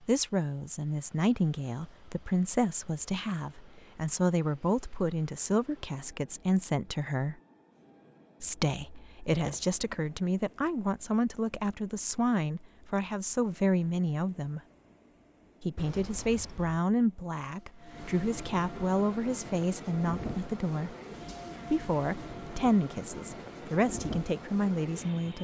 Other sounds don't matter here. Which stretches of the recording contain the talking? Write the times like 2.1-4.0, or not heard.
0.0-7.3, 8.4-14.6, 15.6-20.9, 21.7-25.3.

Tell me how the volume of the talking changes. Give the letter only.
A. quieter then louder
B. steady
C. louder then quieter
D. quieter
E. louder
B.